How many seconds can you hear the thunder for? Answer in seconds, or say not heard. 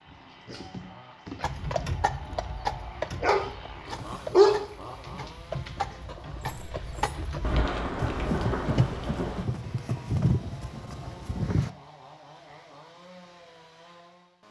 2 s.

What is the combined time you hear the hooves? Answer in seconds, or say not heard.
10 s.